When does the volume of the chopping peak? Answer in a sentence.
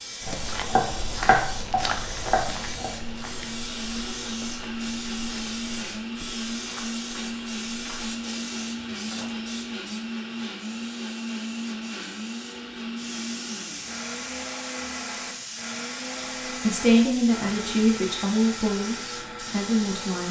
The volume of the chopping peaks at 1 second.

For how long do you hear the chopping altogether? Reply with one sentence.
You can hear the chopping for 3 seconds altogether.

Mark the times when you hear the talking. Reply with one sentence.
The talking can be heard from 16.4 to 20.2 s.